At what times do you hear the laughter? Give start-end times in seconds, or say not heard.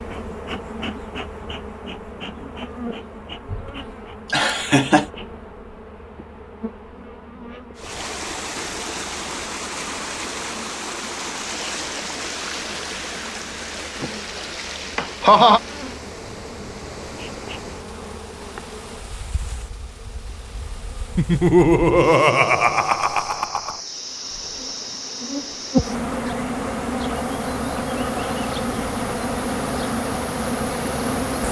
4.3-5.0, 14.9-15.6, 21.1-23.8.